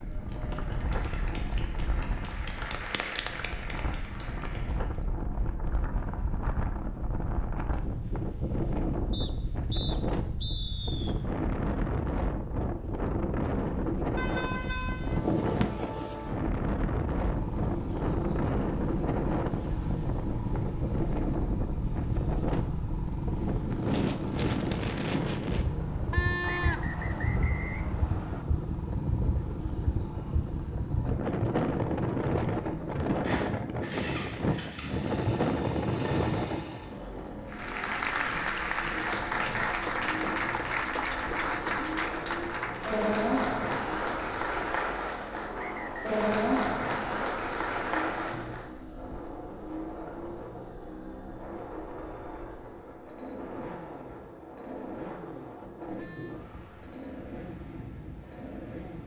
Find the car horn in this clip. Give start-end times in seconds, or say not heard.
14.2-15.2, 25.8-27.3, 55.9-56.4.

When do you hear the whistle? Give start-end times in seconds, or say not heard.
9.1-11.2, 26.4-28.4, 45.5-46.1.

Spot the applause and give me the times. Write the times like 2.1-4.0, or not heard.
0.0-5.0, 37.5-48.7.